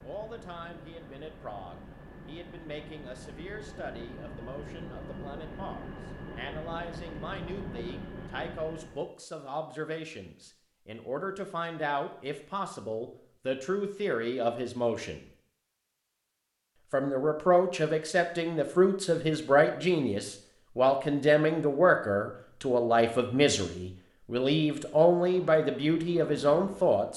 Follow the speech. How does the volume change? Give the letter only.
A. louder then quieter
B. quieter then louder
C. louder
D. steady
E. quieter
C.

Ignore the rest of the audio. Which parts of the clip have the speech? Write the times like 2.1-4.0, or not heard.
0.0-15.2, 16.9-27.1.